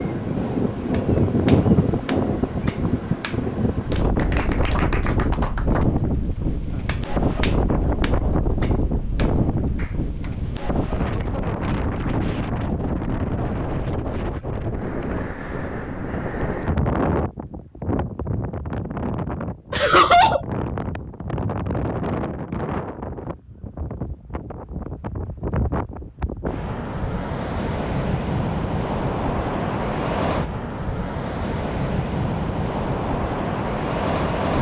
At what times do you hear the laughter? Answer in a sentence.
The laughter can be heard from 19.7 to 20.4 s.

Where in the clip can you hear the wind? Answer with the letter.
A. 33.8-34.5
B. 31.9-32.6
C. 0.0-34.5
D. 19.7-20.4
C.